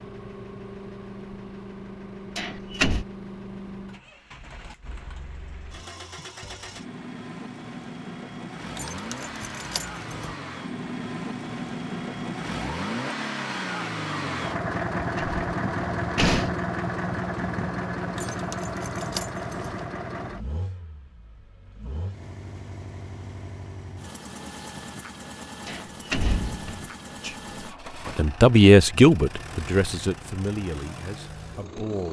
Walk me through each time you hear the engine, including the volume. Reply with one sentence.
You can hear the engine from 0.0 to 32.0 s, getting louder then quieter.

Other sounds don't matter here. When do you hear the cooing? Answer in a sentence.
The cooing can't be heard in this clip.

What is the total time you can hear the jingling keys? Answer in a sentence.
You can hear the jingling keys for 3 seconds altogether.